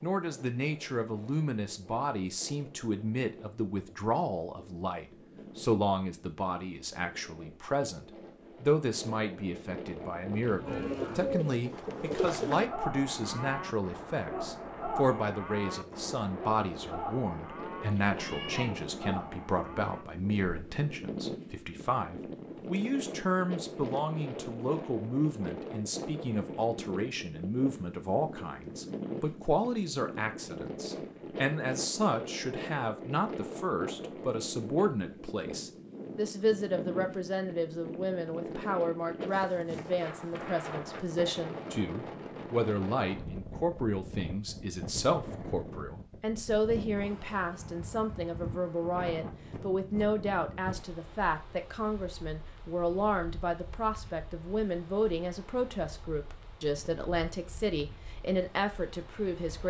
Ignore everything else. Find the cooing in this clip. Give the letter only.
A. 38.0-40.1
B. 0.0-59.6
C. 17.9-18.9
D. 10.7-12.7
D.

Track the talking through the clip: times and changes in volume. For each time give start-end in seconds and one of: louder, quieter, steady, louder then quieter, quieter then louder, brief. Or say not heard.
0.0-59.6 steady.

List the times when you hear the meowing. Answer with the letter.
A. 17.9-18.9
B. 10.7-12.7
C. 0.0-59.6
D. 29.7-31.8
A.